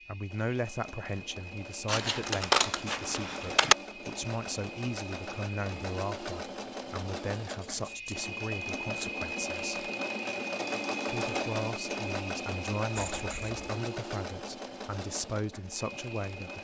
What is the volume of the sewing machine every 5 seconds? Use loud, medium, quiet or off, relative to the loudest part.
medium, loud, loud, medium.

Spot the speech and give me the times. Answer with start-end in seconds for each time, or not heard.
0.1-9.9, 11.1-16.5.